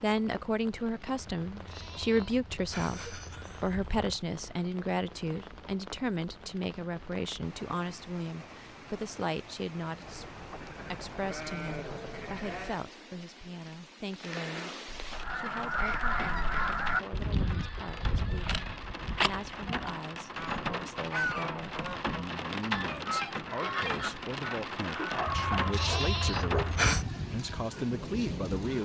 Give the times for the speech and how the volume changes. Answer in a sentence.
The speech can be heard from 0.0 to 14.8 s, getting quieter; and from 15.3 to 28.8 s, getting louder.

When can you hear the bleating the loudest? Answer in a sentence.
The volume of the bleating peaks at 27 seconds.